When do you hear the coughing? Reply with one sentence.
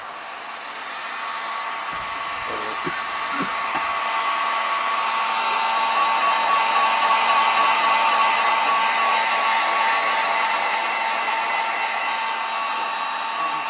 You can hear the coughing from 1.9 to 4.0 s.